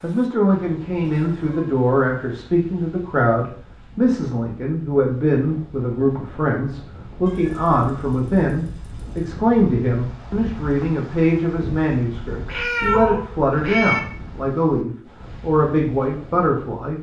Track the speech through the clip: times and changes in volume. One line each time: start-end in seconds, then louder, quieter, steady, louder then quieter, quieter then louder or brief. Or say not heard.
0.0-16.9 steady.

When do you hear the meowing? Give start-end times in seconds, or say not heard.
1.0-1.6, 7.2-9.2, 12.4-14.0.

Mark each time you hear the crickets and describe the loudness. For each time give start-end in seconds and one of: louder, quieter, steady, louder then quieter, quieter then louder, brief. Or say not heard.
not heard.